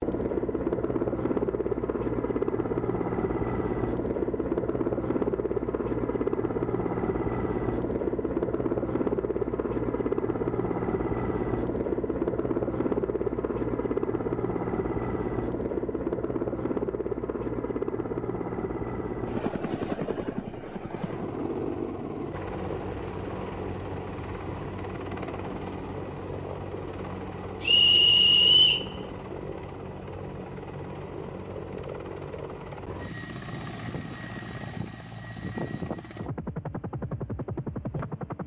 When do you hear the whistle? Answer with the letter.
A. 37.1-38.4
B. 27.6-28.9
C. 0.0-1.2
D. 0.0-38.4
B.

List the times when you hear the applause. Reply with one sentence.
The applause can't be heard in this clip.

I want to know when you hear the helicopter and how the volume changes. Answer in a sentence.
The helicopter can be heard from 0.0 to 38.4 s, getting quieter.